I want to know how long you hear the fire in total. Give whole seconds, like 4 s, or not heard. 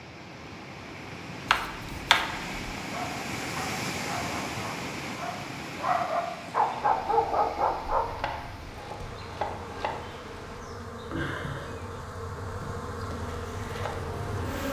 not heard.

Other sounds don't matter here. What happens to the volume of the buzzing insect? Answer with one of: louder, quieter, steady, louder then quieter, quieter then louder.
louder.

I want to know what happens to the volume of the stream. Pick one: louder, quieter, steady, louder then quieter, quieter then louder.
louder then quieter.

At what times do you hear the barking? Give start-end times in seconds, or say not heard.
2.9-8.1.